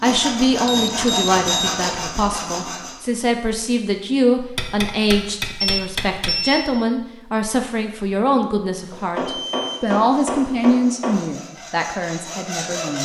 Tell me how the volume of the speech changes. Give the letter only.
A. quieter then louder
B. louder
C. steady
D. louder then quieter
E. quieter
C.